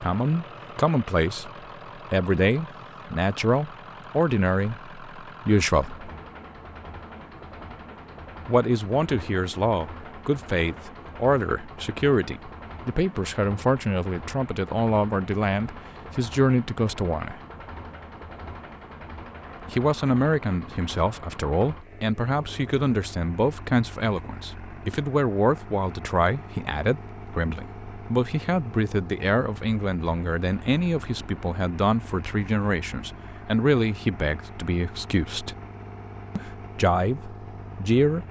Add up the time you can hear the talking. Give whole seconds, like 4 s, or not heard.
32 s.